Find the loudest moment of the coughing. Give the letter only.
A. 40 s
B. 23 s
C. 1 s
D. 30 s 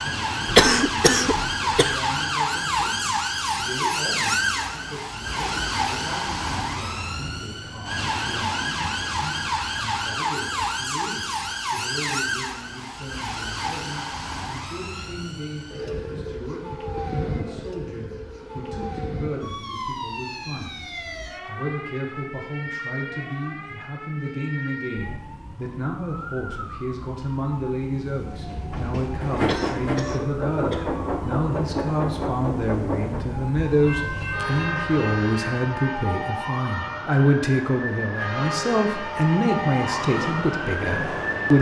C.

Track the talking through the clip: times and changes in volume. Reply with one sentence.
The talking can be heard from 0.0 to 41.5 s, getting louder.